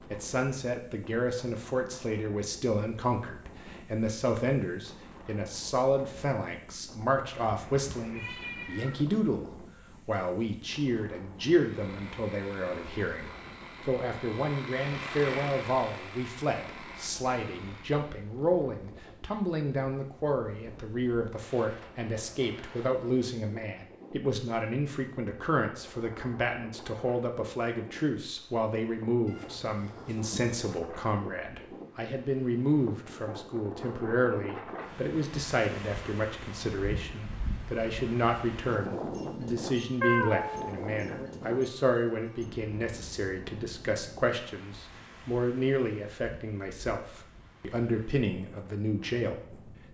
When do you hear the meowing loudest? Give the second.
40 s.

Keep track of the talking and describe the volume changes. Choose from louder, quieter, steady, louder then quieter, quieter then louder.
steady.